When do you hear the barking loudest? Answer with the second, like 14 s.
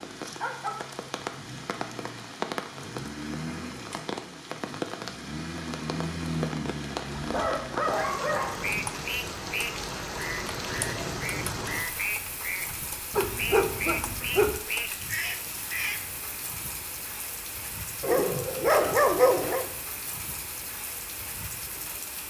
19 s.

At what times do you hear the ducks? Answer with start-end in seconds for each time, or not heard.
8.6-16.1.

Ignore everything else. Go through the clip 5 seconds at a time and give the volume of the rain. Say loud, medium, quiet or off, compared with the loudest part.
loud, loud, loud, medium, medium.